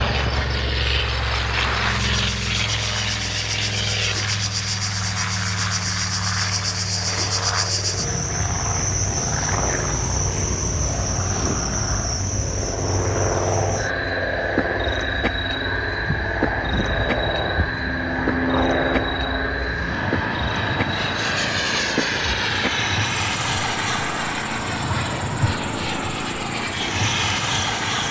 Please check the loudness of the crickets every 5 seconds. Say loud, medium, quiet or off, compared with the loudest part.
loud, loud, loud, loud, loud, medium.